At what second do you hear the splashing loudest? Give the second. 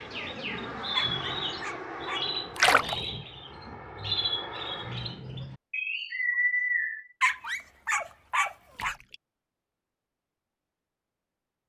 3 s.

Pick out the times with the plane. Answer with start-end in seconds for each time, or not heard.
0.0-5.2.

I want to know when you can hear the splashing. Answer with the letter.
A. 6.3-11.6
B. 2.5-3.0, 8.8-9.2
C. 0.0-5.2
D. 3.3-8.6
B.